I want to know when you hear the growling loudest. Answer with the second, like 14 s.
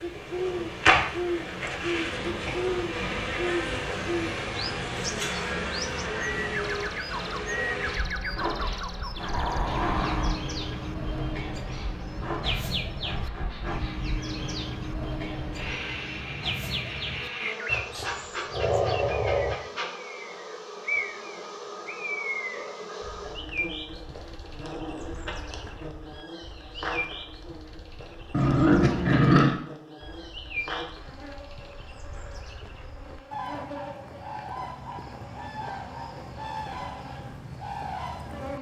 29 s.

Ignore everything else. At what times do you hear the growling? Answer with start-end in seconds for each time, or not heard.
9.2-10.4, 17.6-19.6, 28.3-29.6.